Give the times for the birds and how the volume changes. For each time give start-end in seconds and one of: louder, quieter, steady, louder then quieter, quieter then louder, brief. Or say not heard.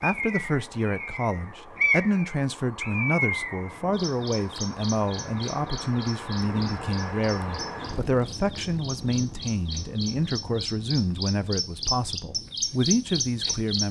0.0-13.8 quieter then louder.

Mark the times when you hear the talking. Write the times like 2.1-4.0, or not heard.
0.0-13.8.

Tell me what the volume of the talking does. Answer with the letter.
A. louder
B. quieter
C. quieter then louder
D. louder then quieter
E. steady
E.